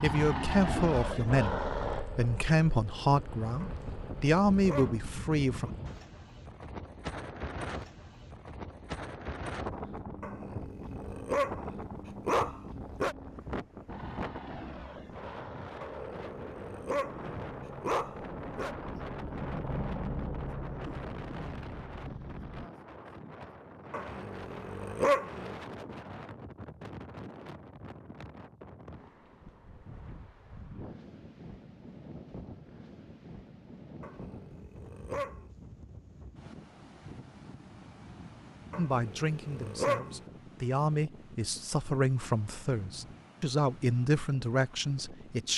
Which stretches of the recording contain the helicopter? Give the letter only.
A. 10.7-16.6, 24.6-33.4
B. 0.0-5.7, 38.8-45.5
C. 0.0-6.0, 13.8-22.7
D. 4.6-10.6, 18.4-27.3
C.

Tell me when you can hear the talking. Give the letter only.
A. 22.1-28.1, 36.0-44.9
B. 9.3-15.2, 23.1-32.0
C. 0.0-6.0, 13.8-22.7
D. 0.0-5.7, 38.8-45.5
D.